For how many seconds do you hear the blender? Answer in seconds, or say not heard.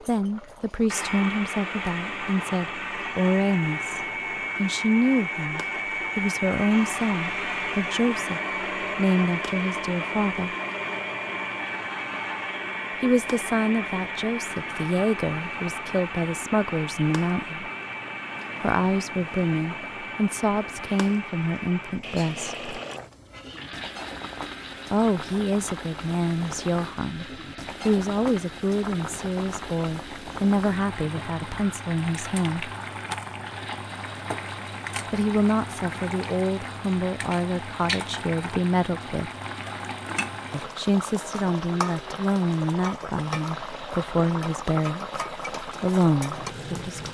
47 s.